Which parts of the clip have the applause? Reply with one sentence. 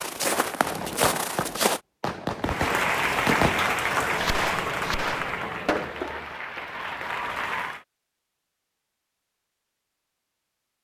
You can hear the applause from 2.4 to 7.8 s.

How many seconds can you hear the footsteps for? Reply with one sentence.
You can hear the footsteps for 2 seconds altogether.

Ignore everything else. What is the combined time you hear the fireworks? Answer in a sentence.
The fireworks can be heard for 6 seconds in total.